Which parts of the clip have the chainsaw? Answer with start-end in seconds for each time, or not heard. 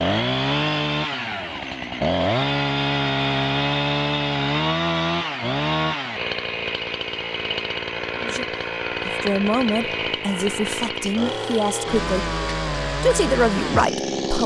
0.0-14.4.